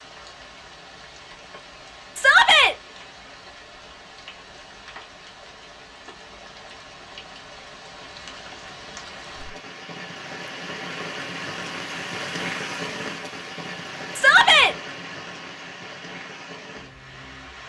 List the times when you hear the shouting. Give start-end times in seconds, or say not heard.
2.1-2.8, 14.2-14.8.